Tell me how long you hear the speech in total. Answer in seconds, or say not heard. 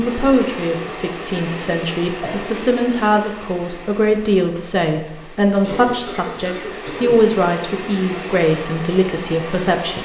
10 s.